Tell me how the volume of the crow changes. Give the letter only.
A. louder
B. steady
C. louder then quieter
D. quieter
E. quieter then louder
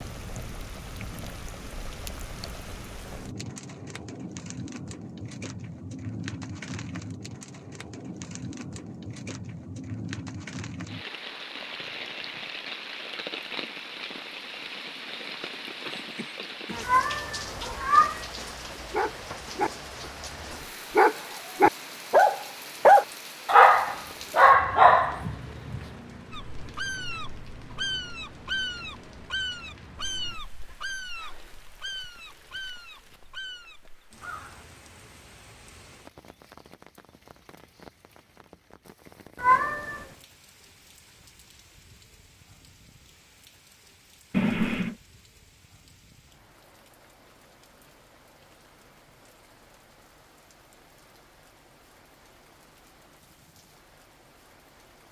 D.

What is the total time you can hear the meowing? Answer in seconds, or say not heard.
2 s.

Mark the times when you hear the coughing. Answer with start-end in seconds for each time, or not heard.
15.8-16.9, 44.3-45.0.